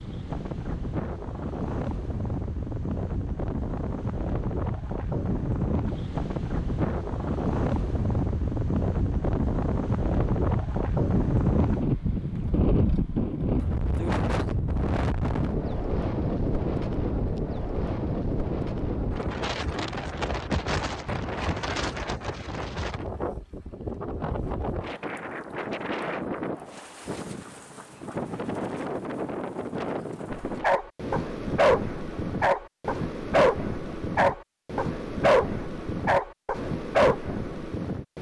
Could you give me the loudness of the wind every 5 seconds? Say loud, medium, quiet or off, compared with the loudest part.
medium, loud, loud, loud, medium, medium, medium, medium.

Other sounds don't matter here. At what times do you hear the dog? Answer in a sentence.
You can hear the dog from 30.3 to 37.7 s.